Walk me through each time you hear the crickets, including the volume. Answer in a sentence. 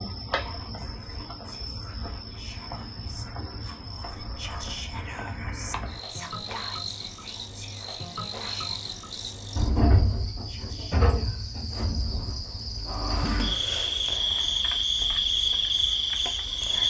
The crickets can be heard from 0.0 to 16.8 s, getting louder.